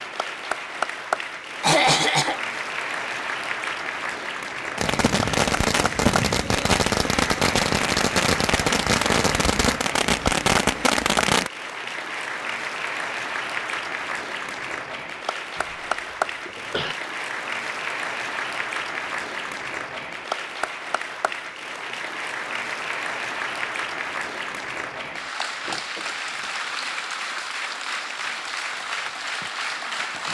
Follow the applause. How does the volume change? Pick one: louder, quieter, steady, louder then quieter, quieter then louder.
steady.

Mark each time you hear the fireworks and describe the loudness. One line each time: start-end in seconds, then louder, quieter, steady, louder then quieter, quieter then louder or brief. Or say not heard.
4.8-11.5 steady.